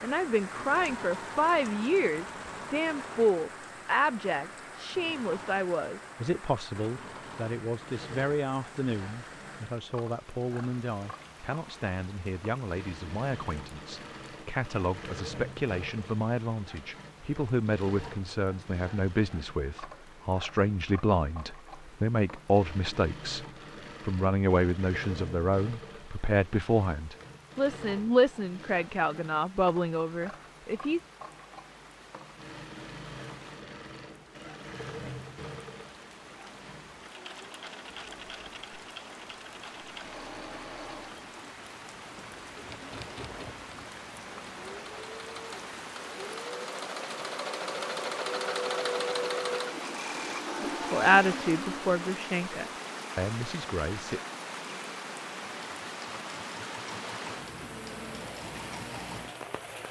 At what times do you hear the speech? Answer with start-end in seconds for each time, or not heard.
0.0-31.0, 50.7-54.2.